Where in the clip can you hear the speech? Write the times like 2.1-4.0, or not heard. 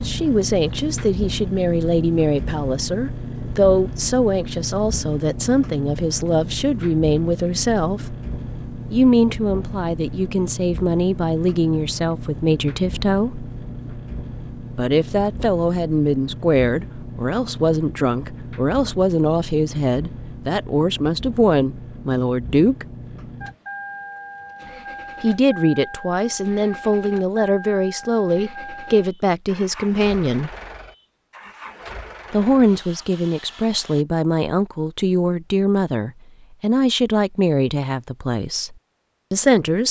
0.1-8.1, 8.9-13.4, 14.8-22.9, 25.2-30.5, 32.3-39.8.